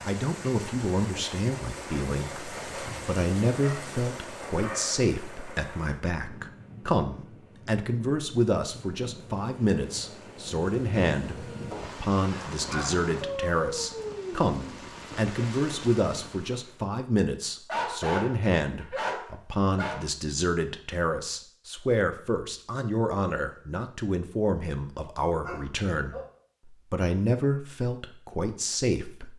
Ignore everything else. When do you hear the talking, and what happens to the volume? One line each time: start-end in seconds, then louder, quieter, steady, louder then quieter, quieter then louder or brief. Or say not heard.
0.0-29.3 steady.